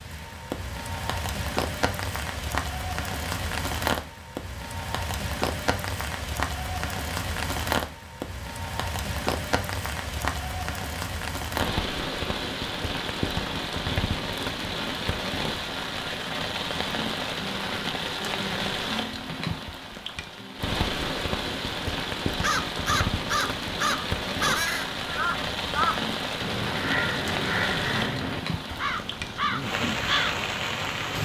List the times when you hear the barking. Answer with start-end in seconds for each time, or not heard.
not heard.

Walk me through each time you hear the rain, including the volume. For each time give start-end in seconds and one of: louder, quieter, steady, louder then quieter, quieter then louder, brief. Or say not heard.
0.0-31.1 steady.